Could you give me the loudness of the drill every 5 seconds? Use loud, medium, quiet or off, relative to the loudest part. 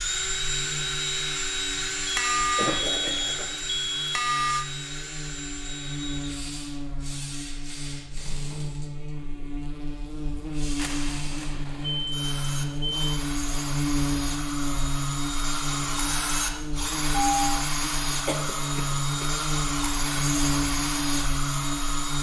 loud, medium, medium, loud, loud.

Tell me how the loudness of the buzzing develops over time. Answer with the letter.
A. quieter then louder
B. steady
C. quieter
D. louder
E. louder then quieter
D.